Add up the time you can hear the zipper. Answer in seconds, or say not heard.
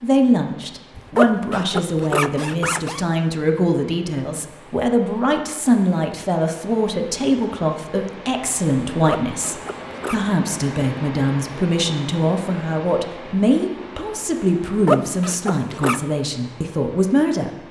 5 s.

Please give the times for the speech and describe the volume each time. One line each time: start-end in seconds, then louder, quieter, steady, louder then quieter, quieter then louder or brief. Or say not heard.
0.0-17.6 steady.